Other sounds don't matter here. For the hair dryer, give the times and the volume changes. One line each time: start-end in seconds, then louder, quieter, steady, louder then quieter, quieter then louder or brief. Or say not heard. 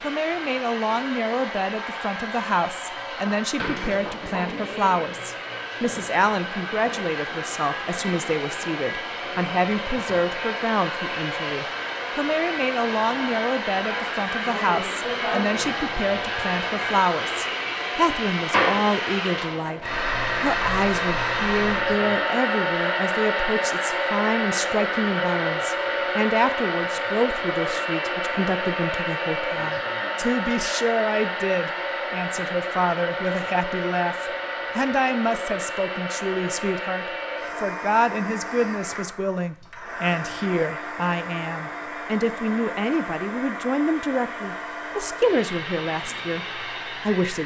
0.0-47.4 louder then quieter.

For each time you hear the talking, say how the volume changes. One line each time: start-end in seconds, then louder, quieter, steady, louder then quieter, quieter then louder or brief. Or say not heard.
0.0-47.4 steady.